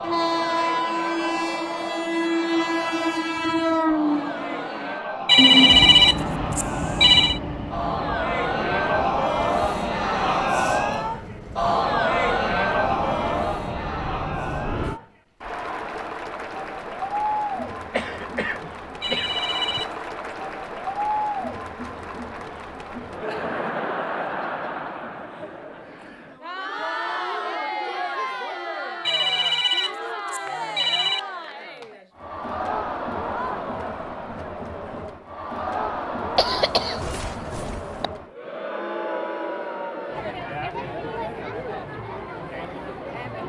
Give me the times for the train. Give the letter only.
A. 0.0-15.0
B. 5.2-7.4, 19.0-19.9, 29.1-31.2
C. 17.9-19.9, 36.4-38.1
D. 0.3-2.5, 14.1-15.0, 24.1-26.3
A.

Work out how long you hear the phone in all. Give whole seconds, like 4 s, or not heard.
5 s.